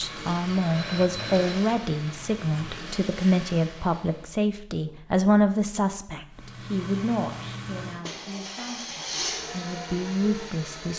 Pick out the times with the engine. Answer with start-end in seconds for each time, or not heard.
0.0-4.3, 6.3-10.9.